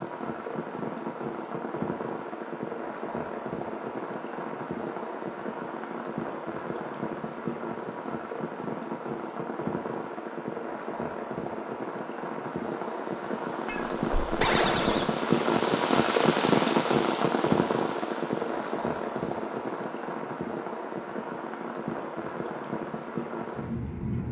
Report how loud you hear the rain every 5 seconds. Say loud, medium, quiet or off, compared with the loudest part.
medium, medium, medium, loud, medium.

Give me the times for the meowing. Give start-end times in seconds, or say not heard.
13.7-15.1.